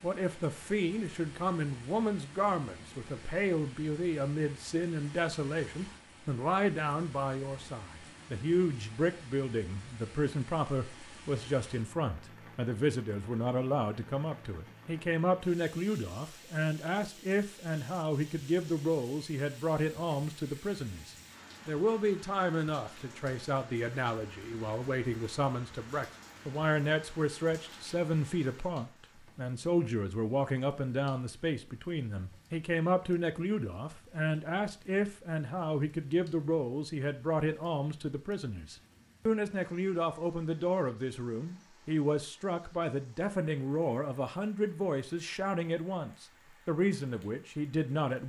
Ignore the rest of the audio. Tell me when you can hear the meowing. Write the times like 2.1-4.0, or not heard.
not heard.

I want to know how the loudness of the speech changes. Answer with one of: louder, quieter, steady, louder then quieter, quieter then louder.
steady.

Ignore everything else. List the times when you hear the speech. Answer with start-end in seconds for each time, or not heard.
0.0-48.2.